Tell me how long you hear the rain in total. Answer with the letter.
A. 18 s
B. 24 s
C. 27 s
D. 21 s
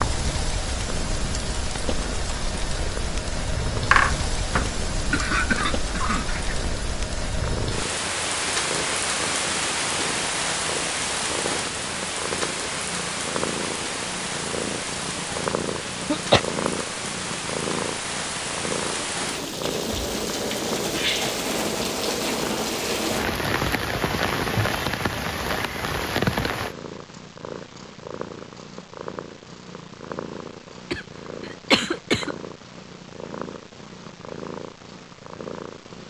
C.